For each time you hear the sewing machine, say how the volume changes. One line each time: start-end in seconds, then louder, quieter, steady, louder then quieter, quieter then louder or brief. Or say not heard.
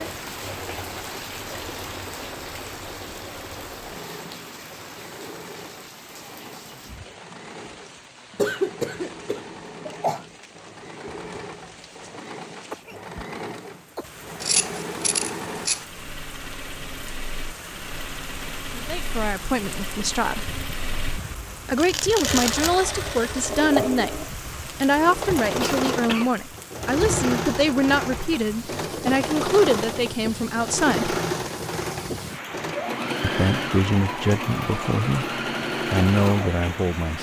0.0-37.1 louder.